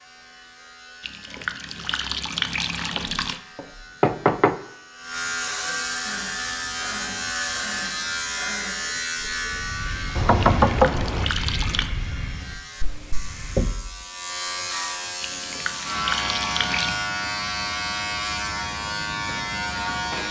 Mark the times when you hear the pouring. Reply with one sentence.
You can hear the pouring from 1.0 to 3.4 s, from 10.4 to 11.9 s and from 15.2 to 16.9 s.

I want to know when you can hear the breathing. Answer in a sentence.
The breathing can be heard from 6.0 to 13.8 s.